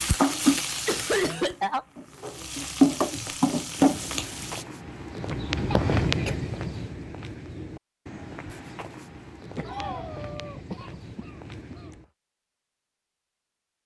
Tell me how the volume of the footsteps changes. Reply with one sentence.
The loudness of the footsteps goes up, then down.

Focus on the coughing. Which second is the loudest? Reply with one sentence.
The loudest moment of the coughing is at 1 second.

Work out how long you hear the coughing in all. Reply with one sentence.
You can hear the coughing for 5 seconds altogether.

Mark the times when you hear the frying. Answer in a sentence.
The frying can be heard from 0.0 to 4.7 s.